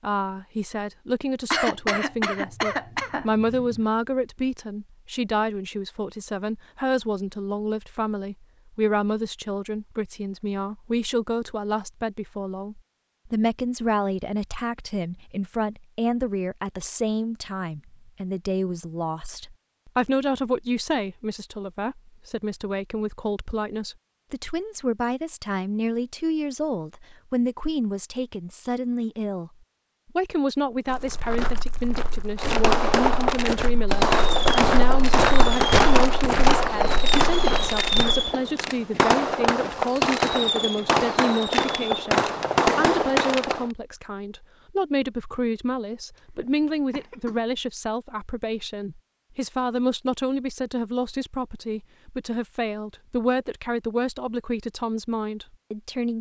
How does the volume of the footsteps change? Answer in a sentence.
The volume of the footsteps goes up, then down.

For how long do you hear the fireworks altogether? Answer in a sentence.
You can hear the fireworks for 11 seconds altogether.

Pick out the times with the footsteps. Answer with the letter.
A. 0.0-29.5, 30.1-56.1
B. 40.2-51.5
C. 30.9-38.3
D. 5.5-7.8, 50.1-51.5
C.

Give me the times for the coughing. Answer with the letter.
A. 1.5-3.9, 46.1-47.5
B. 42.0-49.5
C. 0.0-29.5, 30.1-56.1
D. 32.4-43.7
A.